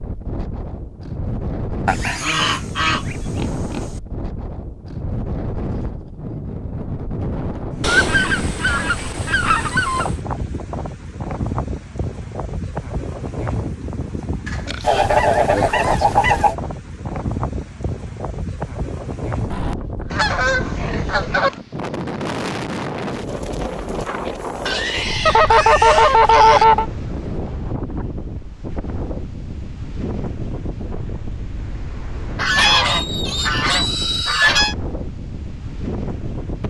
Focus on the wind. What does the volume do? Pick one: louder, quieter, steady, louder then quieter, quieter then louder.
steady.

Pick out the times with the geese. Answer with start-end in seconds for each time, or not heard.
1.9-3.1, 7.8-10.2, 14.8-16.6, 19.5-21.5, 25.2-26.9, 32.4-34.8.